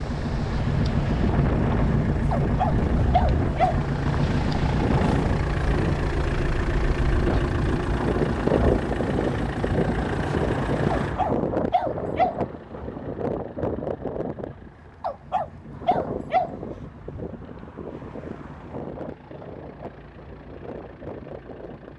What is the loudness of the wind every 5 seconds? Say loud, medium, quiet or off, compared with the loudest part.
loud, loud, loud, medium, quiet.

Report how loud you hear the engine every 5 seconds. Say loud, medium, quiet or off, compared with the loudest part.
loud, loud, medium, quiet, quiet.